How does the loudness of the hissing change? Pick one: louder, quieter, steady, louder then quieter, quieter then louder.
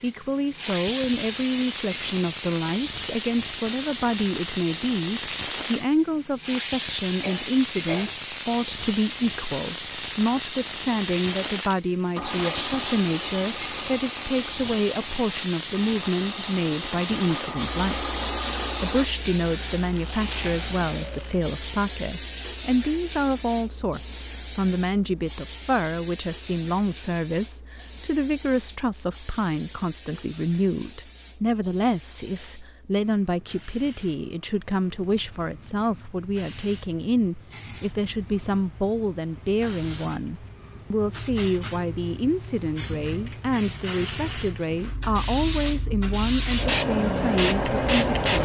quieter then louder.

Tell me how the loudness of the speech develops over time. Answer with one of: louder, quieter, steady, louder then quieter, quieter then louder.
steady.